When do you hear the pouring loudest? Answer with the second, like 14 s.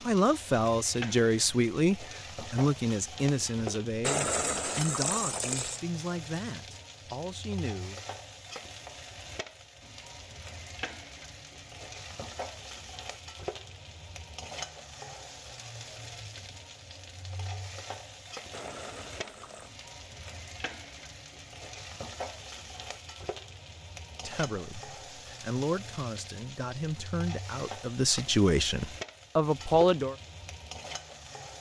4 s.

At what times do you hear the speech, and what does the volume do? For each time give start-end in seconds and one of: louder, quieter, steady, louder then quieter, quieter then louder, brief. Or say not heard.
0.1-8.0 quieter
24.2-30.1 louder.